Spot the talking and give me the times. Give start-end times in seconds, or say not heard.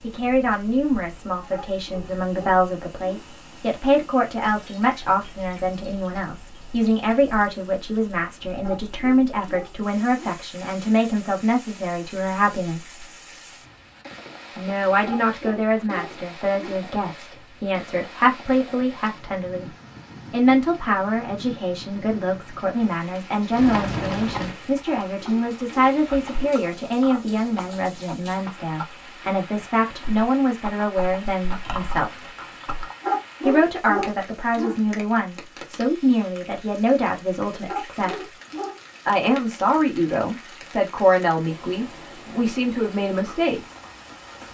0.0-13.0, 14.6-19.6, 20.3-32.3, 33.5-38.3, 39.0-43.6.